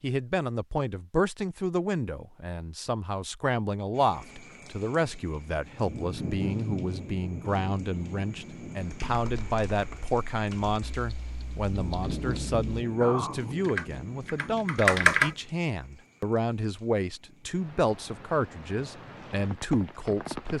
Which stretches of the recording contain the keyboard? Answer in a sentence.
The keyboard can be heard from 9.1 to 15.3 s.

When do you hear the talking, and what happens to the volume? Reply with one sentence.
You can hear the talking from 0.0 to 20.5 s, at a steady volume.